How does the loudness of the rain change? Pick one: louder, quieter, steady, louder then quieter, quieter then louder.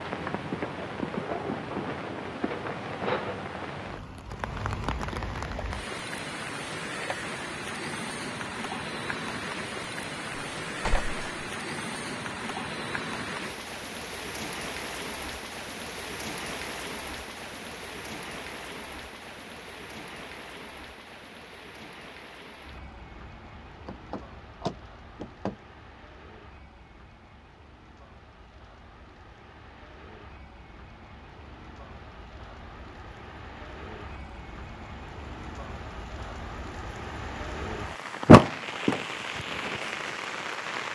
quieter then louder.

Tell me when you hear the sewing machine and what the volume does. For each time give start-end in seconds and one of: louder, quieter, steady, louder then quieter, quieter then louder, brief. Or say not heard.
not heard.